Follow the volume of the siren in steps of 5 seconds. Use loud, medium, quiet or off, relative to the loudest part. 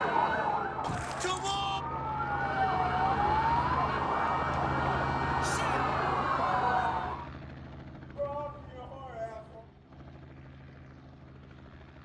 loud, loud, off.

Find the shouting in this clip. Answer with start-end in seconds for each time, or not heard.
0.8-1.9, 5.4-5.8, 8.2-9.7.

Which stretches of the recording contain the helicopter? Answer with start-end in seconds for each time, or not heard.
0.0-12.0.